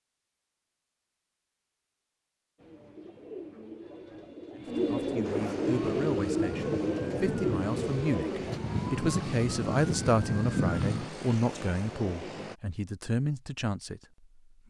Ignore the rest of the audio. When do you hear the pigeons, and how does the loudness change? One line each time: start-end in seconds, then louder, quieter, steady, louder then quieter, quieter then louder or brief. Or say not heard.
2.5-8.6 louder.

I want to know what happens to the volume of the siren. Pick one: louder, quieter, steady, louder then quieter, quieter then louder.
louder.